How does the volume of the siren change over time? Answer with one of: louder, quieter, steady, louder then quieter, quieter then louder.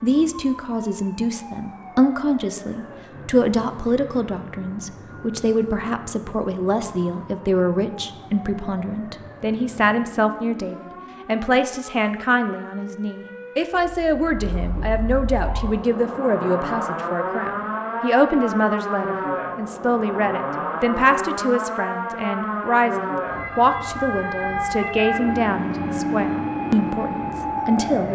louder.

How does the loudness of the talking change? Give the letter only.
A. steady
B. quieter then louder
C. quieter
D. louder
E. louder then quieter
A.